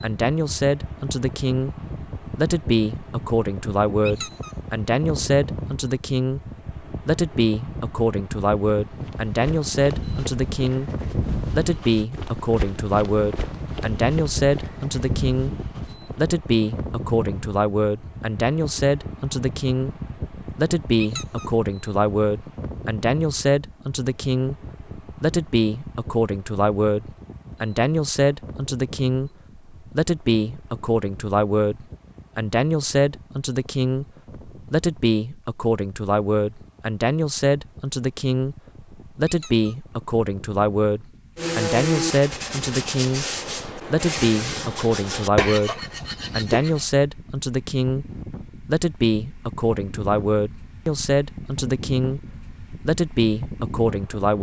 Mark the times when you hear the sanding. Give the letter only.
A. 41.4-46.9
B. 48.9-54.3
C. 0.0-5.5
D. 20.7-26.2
A.